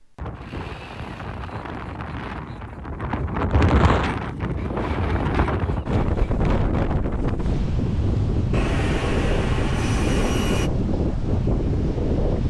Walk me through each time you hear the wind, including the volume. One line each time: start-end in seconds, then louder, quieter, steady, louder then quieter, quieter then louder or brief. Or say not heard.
0.0-12.4 louder.